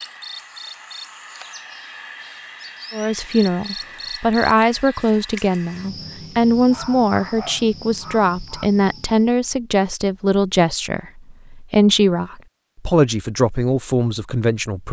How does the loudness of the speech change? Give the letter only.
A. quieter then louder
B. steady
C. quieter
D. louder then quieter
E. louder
B.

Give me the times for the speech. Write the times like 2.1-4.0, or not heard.
2.9-14.8.